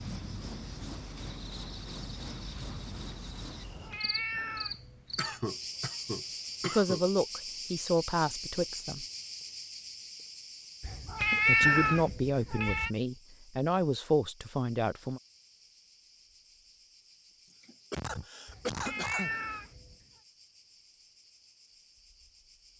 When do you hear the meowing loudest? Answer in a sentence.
The volume of the meowing peaks at 12 seconds.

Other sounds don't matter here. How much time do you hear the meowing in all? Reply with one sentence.
The meowing can be heard for 5 seconds in total.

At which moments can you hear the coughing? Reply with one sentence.
The coughing can be heard from 5.2 to 7.0 s and from 17.6 to 19.4 s.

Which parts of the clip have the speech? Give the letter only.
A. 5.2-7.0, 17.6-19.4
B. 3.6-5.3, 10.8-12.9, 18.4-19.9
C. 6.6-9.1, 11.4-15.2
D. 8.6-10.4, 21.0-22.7
C.